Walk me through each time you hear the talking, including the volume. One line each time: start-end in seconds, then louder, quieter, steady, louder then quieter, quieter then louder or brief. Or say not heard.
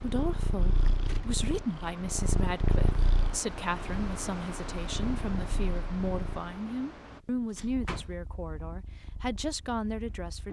0.0-10.4 steady.